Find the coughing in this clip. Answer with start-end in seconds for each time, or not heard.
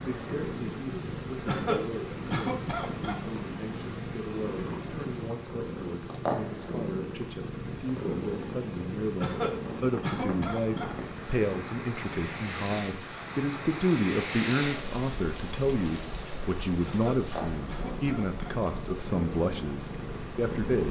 1.4-3.2, 9.2-10.9, 16.9-18.6.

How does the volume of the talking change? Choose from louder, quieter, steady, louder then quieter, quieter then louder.
louder.